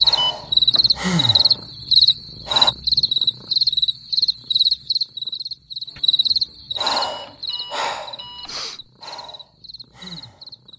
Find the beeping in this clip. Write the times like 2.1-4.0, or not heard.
0.1-0.8, 7.0-8.6.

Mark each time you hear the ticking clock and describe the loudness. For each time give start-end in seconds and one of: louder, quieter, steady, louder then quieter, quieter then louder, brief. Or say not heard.
not heard.